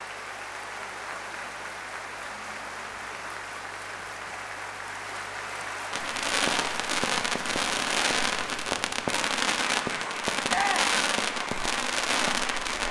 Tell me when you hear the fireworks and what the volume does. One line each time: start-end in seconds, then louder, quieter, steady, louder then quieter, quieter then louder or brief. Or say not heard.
5.9-12.8 steady.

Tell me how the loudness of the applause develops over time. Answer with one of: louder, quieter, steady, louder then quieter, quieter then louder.
steady.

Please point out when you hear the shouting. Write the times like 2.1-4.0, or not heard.
10.4-11.0.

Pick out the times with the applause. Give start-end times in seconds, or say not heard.
0.0-12.8.